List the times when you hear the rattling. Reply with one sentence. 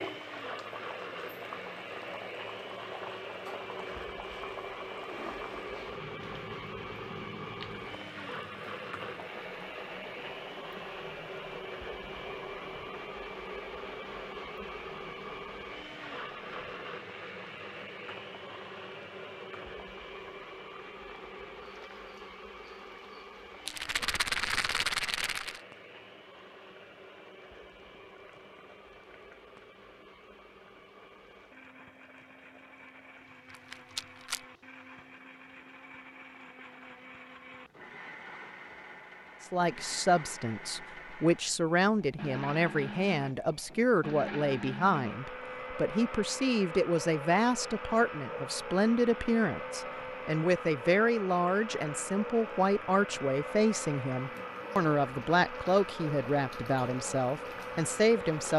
The rattling can be heard from 23.6 to 25.6 s and from 33.5 to 34.4 s.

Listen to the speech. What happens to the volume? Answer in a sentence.
The loudness of the speech stays about the same.